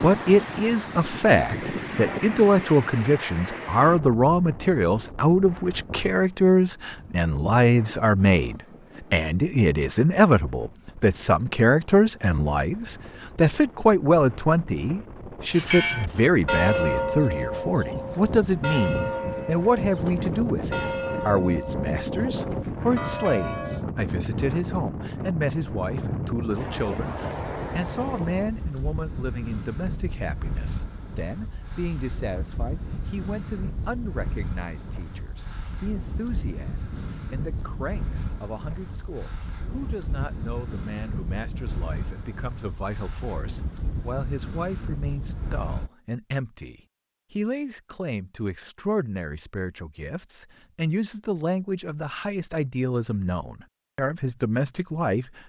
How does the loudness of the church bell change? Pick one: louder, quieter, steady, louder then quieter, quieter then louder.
quieter.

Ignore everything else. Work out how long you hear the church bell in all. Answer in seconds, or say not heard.
8 s.